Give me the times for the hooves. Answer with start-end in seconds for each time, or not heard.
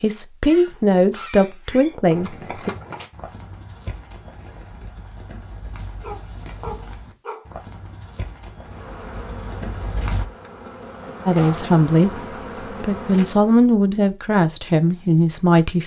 2.1-10.2.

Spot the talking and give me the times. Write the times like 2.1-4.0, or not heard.
0.0-2.7, 11.2-15.8.